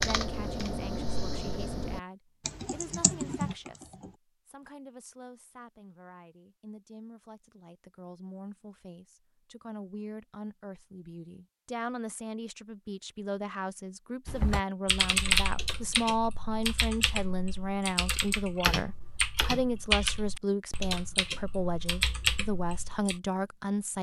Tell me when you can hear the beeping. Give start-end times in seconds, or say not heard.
not heard.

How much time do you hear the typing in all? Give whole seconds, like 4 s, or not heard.
13 s.